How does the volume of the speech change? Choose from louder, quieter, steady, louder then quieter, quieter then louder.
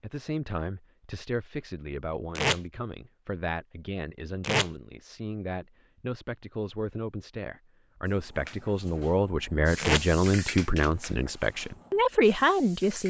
louder.